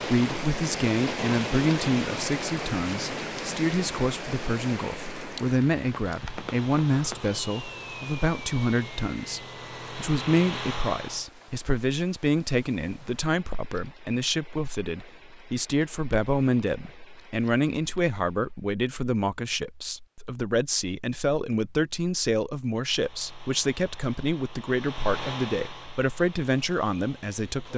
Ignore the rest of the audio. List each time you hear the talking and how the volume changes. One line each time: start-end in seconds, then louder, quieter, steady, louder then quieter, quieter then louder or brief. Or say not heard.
0.1-27.7 steady.